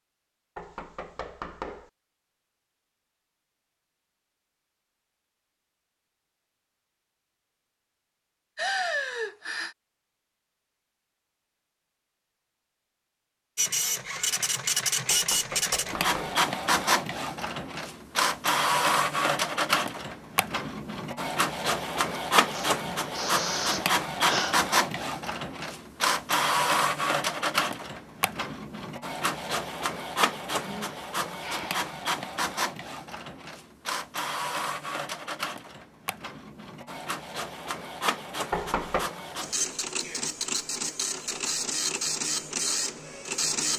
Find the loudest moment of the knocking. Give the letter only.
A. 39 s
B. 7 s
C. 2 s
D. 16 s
A.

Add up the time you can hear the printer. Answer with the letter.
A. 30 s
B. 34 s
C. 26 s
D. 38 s
A.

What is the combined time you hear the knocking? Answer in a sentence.
The knocking can be heard for 3 seconds in total.